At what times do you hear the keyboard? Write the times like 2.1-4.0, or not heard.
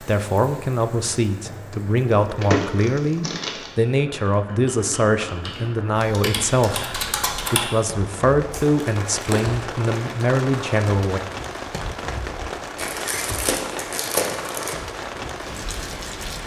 4.3-7.7.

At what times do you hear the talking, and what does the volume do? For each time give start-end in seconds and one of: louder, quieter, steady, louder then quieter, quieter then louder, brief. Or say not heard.
0.0-11.2 steady.